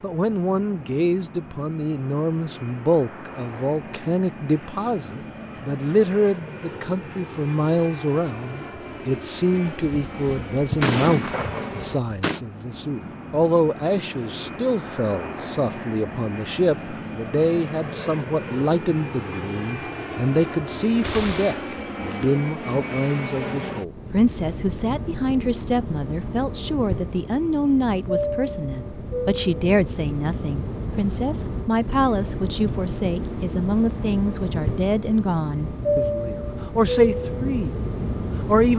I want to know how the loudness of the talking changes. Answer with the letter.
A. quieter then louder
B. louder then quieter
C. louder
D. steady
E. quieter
D.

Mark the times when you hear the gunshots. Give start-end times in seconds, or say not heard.
9.8-12.4, 21.0-22.4.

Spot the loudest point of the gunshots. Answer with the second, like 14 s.
11 s.